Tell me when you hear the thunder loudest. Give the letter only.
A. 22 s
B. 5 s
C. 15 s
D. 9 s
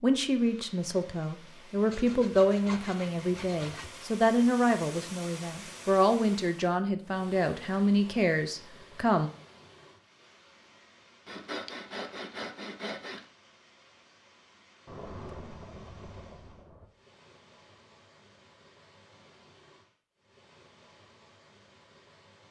C.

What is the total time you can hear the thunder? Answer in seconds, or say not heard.
2 s.